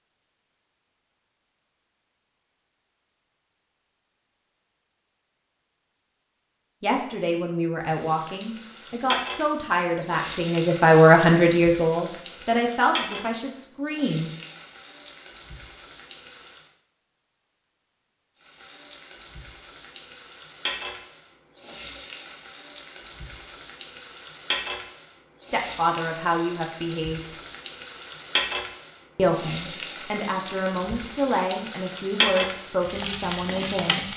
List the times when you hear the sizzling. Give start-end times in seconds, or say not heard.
7.8-16.8, 18.4-34.1.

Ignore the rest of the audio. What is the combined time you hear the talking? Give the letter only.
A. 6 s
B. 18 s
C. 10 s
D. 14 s
D.